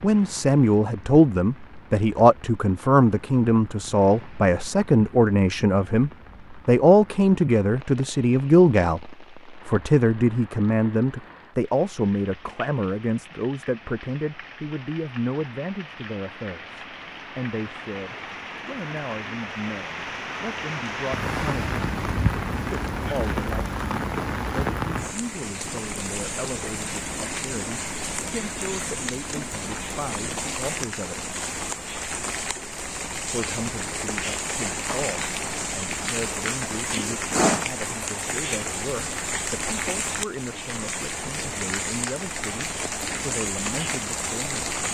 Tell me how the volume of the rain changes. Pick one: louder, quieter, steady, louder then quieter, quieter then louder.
louder.